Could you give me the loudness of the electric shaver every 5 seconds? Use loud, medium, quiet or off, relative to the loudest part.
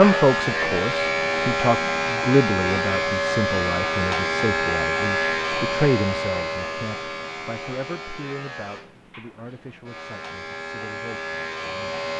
loud, medium, medium.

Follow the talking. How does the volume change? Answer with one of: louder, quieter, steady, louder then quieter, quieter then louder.
quieter.